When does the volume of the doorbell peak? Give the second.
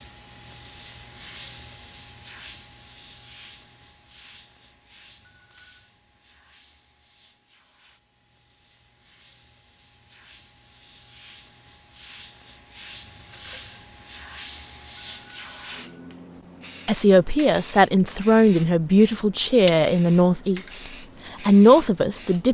15 s.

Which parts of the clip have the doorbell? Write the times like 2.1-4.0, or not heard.
5.2-5.9, 15.0-16.1.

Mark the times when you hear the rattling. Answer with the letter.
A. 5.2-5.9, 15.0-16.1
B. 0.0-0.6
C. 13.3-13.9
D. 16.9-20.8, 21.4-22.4
C.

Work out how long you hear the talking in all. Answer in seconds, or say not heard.
5 s.